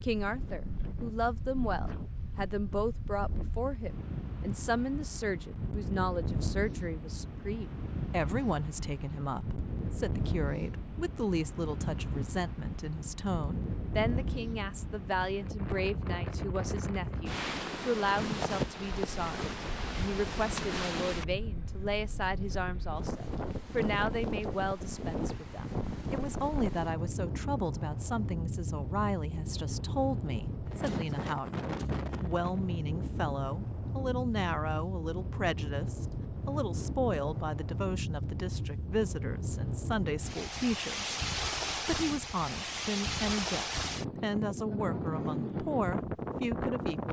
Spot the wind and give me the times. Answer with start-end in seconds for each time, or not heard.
0.0-47.0.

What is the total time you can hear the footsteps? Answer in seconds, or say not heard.
not heard.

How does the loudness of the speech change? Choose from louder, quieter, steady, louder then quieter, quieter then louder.
steady.